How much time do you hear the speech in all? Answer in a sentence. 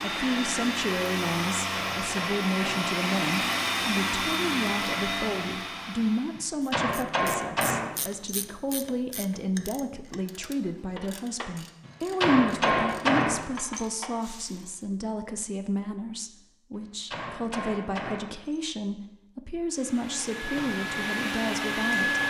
The speech can be heard for 22 seconds in total.